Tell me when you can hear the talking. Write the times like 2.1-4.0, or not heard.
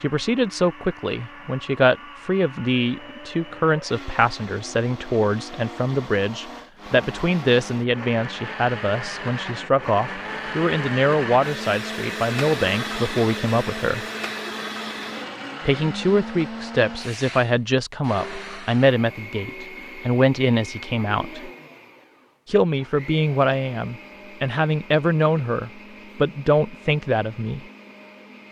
0.0-14.1, 15.7-21.5, 22.4-27.6.